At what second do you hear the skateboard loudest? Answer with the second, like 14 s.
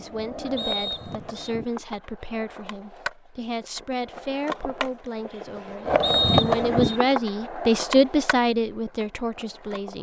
6 s.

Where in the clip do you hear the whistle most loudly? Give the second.
6 s.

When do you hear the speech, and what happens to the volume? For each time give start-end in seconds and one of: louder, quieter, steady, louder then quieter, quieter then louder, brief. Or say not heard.
0.0-9.9 louder.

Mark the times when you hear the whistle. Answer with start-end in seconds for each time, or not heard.
0.6-1.5, 6.0-7.0.